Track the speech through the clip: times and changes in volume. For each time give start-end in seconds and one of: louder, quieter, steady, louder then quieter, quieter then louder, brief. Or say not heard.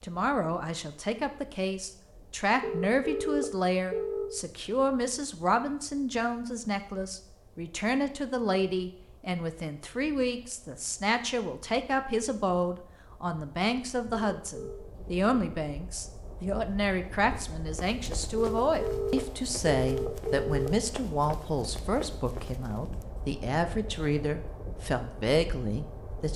0.0-26.3 steady.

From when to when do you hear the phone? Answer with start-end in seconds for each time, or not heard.
2.6-4.3, 14.3-14.8, 18.4-20.9.